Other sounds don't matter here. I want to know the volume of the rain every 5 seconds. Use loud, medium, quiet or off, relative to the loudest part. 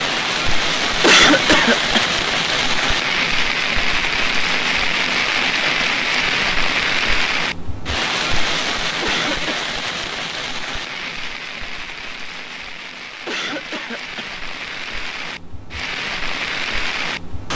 loud, loud, medium, medium.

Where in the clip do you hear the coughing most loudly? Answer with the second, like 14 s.
1 s.